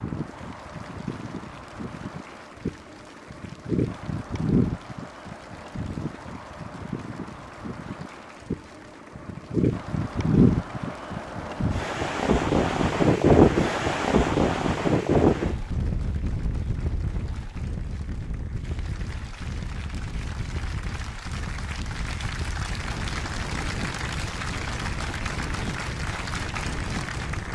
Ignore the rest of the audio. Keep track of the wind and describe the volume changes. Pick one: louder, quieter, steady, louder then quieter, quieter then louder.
louder then quieter.